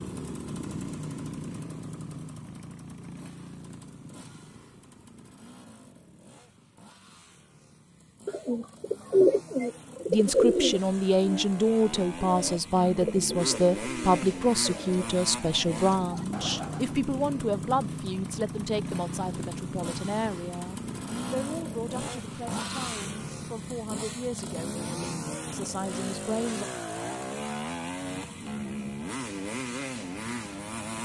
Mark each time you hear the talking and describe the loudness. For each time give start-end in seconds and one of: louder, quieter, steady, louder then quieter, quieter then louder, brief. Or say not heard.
10.1-26.6 quieter.